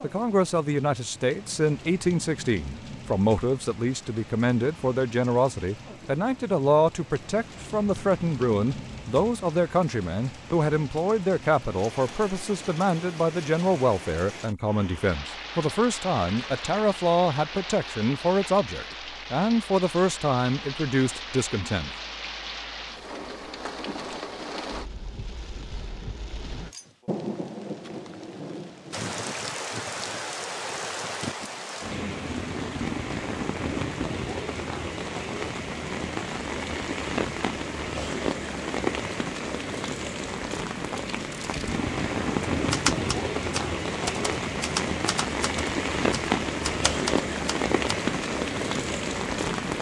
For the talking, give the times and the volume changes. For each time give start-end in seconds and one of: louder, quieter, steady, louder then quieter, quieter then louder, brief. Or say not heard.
0.0-21.9 steady.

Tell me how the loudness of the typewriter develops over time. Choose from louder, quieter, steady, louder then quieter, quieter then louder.
quieter then louder.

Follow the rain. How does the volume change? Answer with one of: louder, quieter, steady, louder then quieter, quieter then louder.
louder.